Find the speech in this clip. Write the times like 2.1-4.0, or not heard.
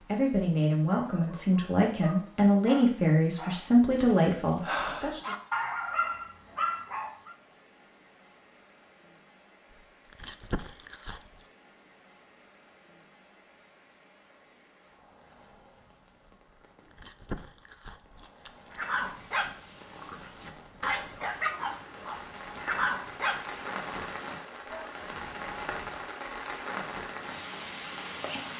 0.0-5.3.